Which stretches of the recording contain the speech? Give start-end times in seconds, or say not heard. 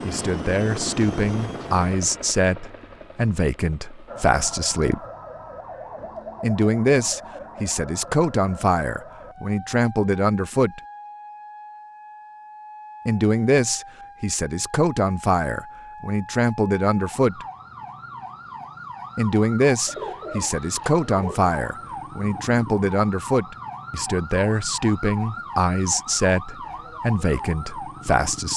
0.1-5.0, 6.4-10.8, 13.1-17.4, 19.1-28.5.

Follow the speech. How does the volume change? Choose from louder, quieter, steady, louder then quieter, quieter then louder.
steady.